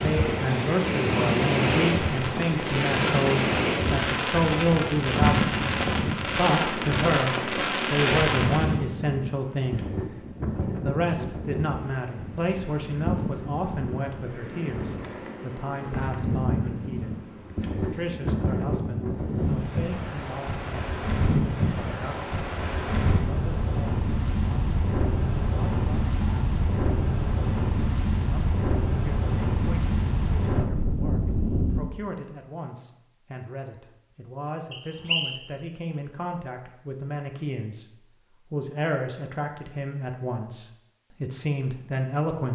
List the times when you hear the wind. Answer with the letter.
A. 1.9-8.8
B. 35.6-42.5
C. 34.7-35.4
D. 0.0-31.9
D.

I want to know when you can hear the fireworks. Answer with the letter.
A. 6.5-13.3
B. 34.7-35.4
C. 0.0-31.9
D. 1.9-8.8
D.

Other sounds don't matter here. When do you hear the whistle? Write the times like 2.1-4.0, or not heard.
34.7-35.4.